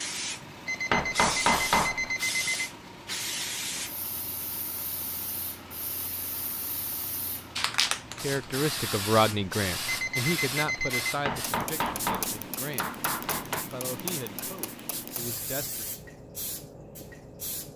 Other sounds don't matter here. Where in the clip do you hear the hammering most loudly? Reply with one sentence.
The loudest moment of the hammering is at 2 seconds.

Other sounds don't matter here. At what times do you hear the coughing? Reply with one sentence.
The coughing can't be heard in this clip.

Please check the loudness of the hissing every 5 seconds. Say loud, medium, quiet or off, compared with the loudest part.
loud, loud, loud, medium.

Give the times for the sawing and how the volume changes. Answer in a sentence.
The sawing can't be heard in this clip.